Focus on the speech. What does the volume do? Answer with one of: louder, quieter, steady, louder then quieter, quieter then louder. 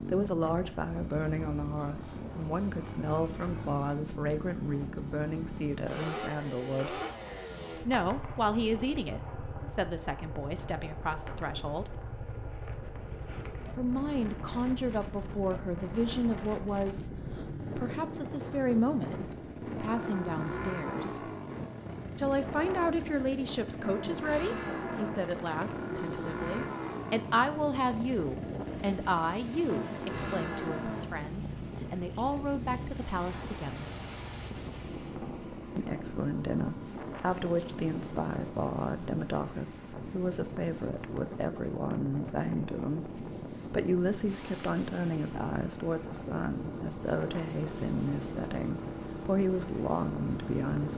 steady.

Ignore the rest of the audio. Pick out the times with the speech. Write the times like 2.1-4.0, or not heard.
0.1-7.0, 7.8-11.9, 13.8-21.3, 22.1-33.9, 35.8-50.9.